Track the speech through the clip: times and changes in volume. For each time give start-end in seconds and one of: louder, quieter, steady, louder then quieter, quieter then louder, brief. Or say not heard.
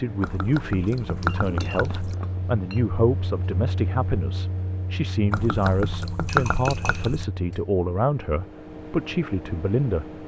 0.0-10.2 steady.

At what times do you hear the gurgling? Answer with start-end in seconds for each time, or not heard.
0.2-2.1, 5.3-7.2.